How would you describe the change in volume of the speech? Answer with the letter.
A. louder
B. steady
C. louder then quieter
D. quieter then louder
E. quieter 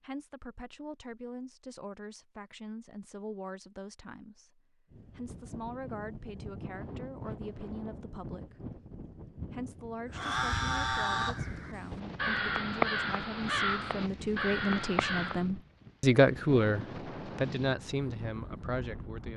A.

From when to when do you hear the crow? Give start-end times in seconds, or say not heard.
10.1-15.4.